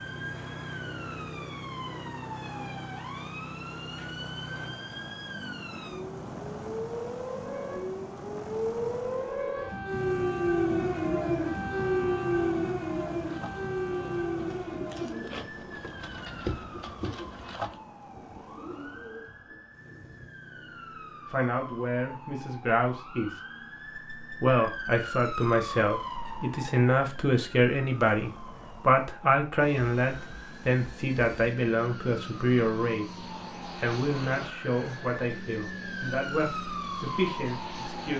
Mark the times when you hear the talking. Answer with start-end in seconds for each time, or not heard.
21.3-23.3, 24.4-33.0, 33.8-38.1.